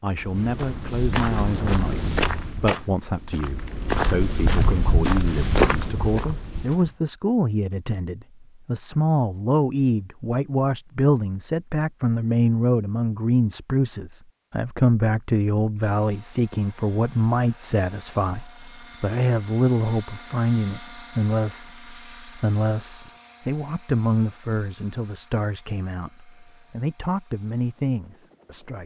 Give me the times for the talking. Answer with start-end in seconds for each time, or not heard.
0.0-28.8.